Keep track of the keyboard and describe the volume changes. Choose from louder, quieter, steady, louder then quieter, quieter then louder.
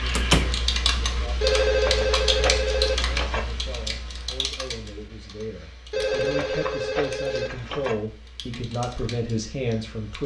quieter.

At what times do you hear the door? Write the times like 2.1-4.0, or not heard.
0.1-0.6.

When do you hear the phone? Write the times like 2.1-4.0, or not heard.
1.4-3.4, 5.9-8.0.